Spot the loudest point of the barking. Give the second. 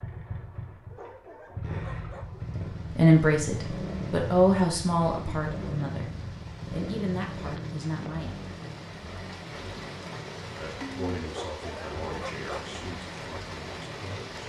12 s.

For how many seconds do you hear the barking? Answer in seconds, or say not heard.
3 s.